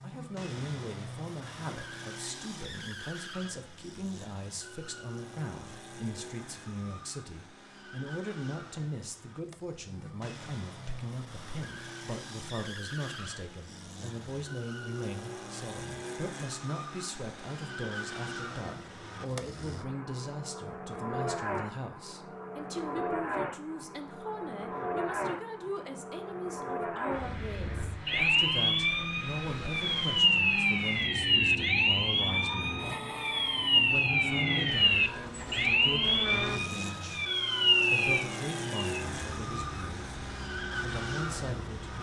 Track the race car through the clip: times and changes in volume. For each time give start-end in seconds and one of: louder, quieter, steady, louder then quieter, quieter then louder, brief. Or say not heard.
0.0-41.9 louder.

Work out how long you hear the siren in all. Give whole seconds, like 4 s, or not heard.
14 s.